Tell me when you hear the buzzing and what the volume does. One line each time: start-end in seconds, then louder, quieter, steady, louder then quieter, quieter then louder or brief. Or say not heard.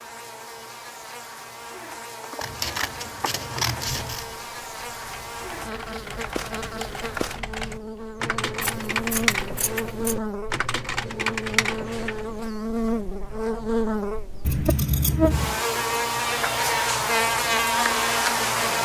0.0-18.8 louder.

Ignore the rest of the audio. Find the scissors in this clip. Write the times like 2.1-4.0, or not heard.
2.4-4.2, 8.7-10.2, 14.4-15.6.